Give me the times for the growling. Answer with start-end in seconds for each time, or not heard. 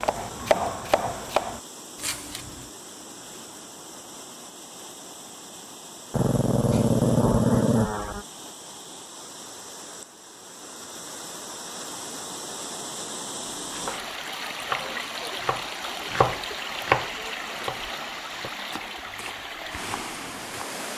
6.1-8.2.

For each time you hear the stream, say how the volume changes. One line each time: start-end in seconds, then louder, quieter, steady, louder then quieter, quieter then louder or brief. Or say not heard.
0.0-20.9 louder.